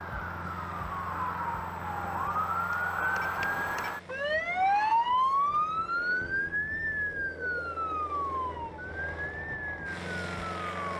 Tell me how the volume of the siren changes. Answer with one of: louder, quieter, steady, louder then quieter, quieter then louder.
louder then quieter.